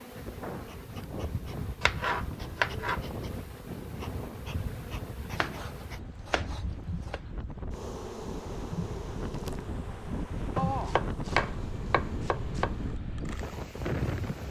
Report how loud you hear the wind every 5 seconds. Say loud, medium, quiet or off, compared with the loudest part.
medium, medium, loud.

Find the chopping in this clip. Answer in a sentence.
You can hear the chopping from 1.8 to 3.0 s, from 5.3 to 7.2 s and from 10.6 to 12.7 s.